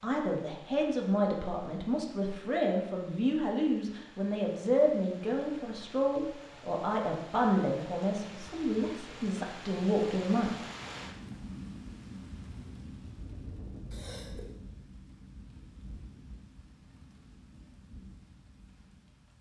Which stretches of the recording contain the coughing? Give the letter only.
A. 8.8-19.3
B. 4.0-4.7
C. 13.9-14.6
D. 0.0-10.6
C.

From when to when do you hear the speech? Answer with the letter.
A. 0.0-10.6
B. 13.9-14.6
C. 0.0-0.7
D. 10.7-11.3
A.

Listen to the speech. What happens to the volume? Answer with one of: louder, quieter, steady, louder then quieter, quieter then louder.
steady.